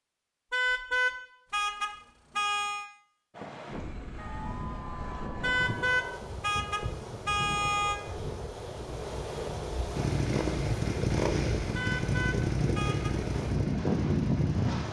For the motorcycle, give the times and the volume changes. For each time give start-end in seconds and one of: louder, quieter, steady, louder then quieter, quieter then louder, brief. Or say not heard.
9.9-14.8 quieter.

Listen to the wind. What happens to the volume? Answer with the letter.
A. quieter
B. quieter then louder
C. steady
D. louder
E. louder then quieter
D.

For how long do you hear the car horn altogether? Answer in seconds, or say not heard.
6 s.